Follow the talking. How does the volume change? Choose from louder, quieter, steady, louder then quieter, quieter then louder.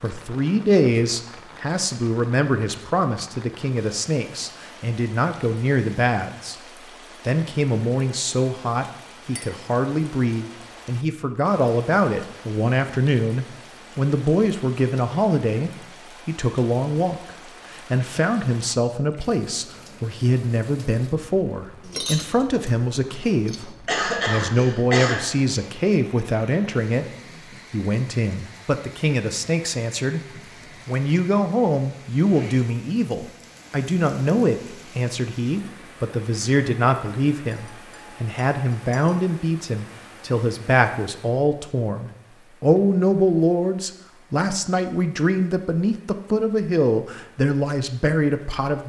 steady.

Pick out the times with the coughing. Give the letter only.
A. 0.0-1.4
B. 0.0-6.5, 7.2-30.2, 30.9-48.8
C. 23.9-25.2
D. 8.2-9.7
C.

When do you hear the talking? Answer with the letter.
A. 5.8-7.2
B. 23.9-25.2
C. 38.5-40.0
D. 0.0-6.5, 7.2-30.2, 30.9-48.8
D.